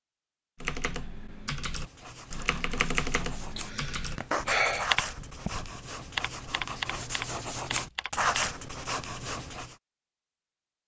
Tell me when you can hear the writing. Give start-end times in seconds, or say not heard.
1.7-9.8.